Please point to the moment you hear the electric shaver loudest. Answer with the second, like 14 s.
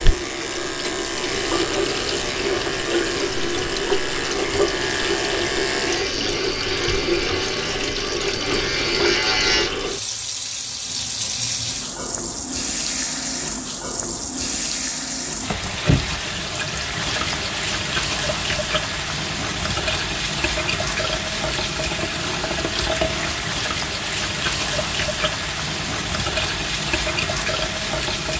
9 s.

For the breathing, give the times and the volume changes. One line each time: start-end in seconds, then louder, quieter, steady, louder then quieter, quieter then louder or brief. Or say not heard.
not heard.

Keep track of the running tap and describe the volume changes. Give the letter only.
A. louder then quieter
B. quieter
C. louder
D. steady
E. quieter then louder
D.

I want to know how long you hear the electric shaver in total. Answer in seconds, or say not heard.
10 s.